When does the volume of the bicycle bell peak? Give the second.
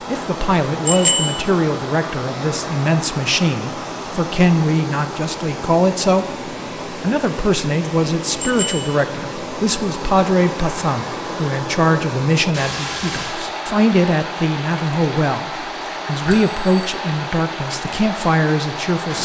1 s.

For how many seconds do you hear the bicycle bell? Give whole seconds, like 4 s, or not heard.
2 s.